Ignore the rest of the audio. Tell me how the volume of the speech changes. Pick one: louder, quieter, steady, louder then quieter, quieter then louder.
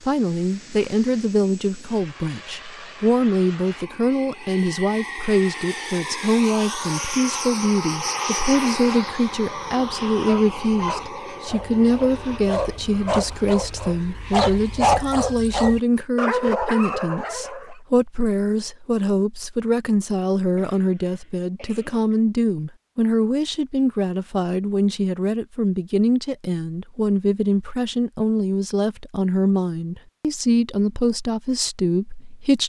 steady.